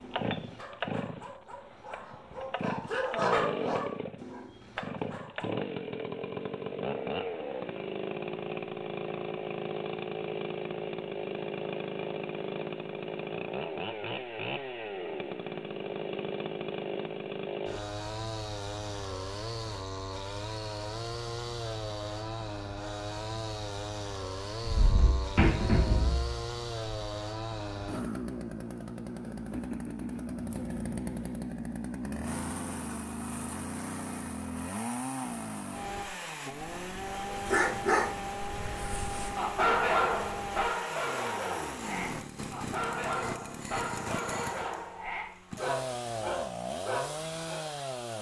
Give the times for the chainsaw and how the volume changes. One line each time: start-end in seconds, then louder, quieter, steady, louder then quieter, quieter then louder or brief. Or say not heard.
0.0-48.1 steady.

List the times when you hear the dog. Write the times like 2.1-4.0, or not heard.
0.0-5.6, 37.3-47.6.